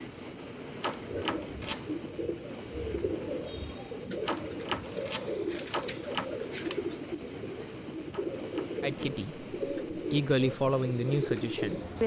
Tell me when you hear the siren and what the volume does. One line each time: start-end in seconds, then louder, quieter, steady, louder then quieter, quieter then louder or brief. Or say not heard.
not heard.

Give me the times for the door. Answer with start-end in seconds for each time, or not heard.
0.8-1.9, 4.2-6.2, 8.1-9.2.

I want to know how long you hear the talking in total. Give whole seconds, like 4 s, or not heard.
3 s.